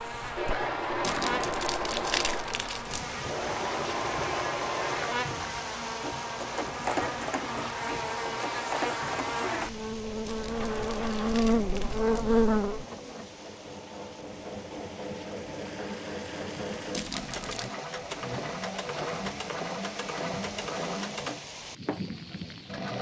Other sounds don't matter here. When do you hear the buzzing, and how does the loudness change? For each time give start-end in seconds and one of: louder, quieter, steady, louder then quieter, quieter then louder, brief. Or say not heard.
0.0-12.8 louder.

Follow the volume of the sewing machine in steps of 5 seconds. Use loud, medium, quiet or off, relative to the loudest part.
loud, loud, medium, loud, loud.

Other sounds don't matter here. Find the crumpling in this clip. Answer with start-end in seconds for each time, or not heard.
1.0-3.0, 10.2-12.2, 16.9-17.7.